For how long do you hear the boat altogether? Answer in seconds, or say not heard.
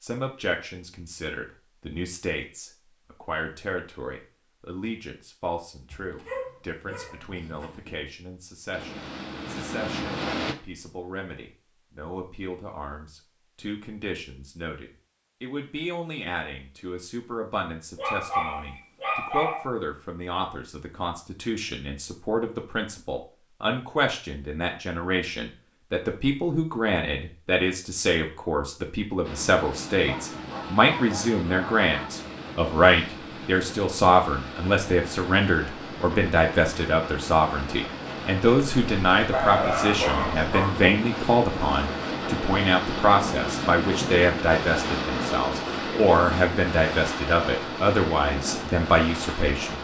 22 s.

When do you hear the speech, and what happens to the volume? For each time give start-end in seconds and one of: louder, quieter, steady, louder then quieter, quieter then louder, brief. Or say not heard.
0.0-49.7 louder.